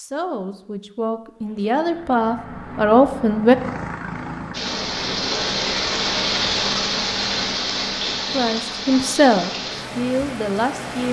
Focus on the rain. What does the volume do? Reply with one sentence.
The loudness of the rain goes down.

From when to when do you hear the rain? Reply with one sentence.
The rain can be heard from 4.5 to 11.0 s.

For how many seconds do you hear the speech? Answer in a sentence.
The speech can be heard for 6 seconds in total.